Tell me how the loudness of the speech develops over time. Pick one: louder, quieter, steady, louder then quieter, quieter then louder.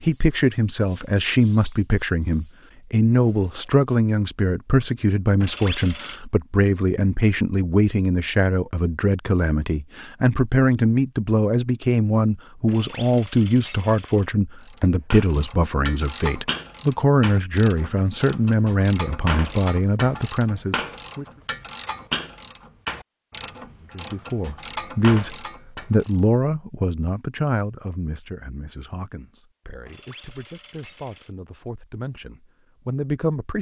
quieter.